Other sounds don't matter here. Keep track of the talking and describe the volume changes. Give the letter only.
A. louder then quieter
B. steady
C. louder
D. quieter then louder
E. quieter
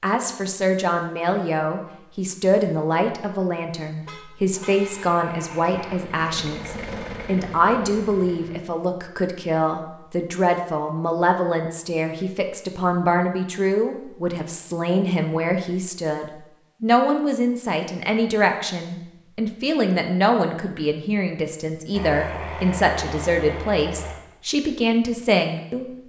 B.